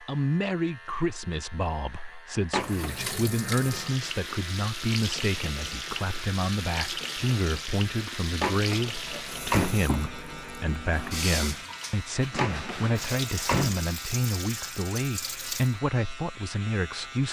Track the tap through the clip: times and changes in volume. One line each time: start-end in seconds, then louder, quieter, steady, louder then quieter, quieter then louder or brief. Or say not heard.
2.5-15.8 steady.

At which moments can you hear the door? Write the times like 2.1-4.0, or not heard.
2.5-3.1, 8.4-9.8, 12.3-13.8.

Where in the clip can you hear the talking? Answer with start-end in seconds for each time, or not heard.
0.0-17.2.